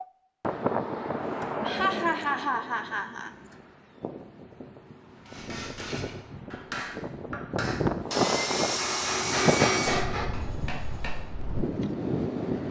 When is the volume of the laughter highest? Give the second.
2 s.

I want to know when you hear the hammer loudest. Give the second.
10 s.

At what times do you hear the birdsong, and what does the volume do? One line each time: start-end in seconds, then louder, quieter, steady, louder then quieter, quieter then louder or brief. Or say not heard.
not heard.